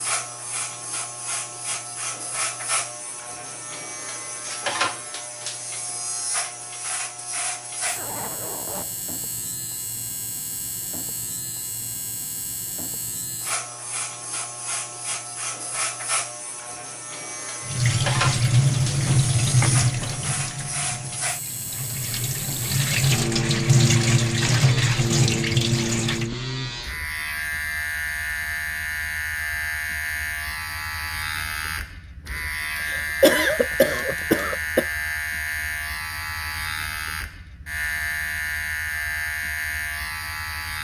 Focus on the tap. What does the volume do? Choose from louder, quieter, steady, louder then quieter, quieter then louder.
quieter then louder.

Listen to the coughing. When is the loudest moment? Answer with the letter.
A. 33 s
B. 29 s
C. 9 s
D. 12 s
A.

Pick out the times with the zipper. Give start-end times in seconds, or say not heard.
8.0-9.0.